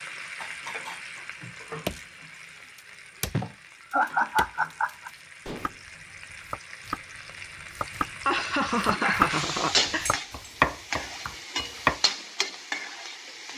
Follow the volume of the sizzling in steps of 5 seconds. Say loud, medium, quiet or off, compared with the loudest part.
medium, loud, loud.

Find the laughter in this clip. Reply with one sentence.
You can hear the laughter from 3.3 to 5.1 s and from 8.2 to 10.1 s.